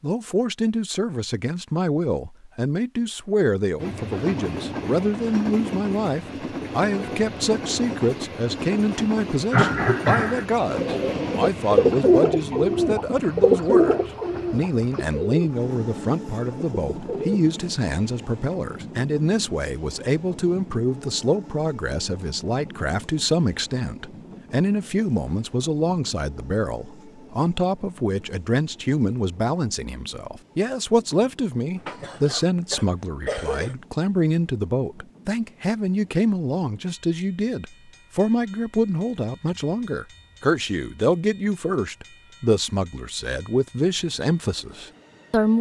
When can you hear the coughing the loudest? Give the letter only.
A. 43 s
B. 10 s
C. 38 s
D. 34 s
B.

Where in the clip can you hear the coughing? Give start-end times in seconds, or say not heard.
9.5-10.4, 31.8-33.8.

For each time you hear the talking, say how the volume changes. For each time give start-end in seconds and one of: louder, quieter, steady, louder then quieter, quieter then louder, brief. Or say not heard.
0.0-45.5 steady.